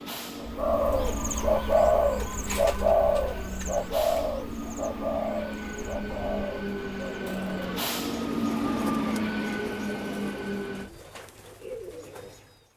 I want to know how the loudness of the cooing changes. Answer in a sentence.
The volume of the cooing goes down.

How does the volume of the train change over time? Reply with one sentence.
The volume of the train goes up.